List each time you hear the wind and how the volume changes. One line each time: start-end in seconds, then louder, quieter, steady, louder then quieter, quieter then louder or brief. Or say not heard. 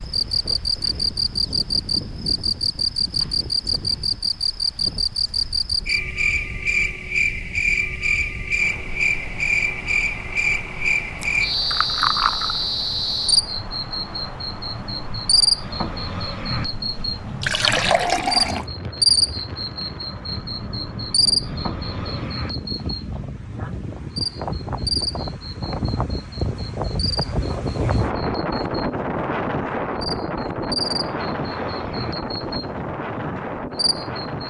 0.0-34.4 louder.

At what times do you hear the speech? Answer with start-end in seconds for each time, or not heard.
not heard.